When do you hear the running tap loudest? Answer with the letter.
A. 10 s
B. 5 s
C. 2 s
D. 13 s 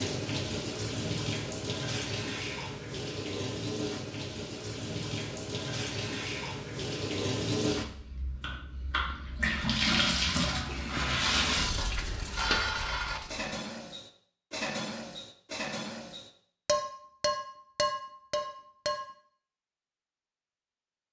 A.